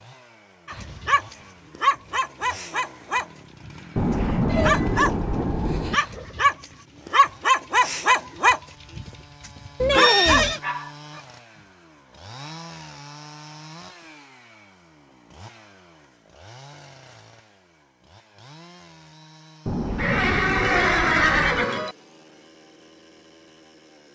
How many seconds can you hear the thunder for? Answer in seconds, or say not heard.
4 s.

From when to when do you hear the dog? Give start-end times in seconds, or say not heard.
0.7-11.2.